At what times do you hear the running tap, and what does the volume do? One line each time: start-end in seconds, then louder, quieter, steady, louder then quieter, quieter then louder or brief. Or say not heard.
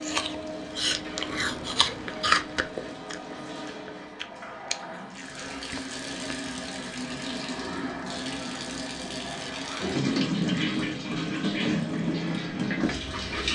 0.0-13.5 louder.